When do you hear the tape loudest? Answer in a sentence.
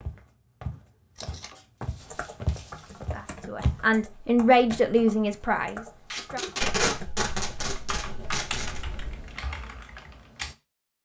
The volume of the tape peaks at 7 seconds.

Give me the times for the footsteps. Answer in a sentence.
You can hear the footsteps from 0.0 to 3.9 s.